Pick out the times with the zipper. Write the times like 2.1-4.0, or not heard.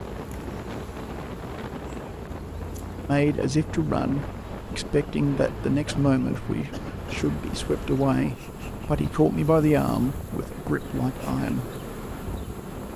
not heard.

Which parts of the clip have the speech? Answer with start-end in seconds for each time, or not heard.
3.0-11.7.